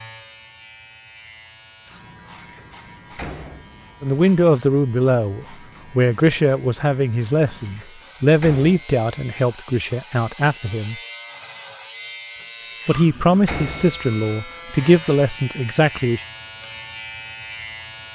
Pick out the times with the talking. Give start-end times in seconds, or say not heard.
4.0-10.9, 12.8-16.2.